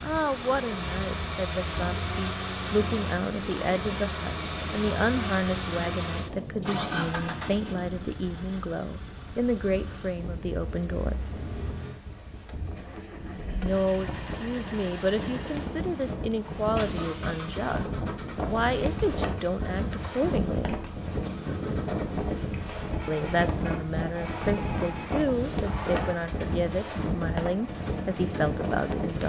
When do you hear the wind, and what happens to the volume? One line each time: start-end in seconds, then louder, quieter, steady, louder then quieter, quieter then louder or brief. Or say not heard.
0.0-29.2 louder.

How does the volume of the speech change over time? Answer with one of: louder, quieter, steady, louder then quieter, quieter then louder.
steady.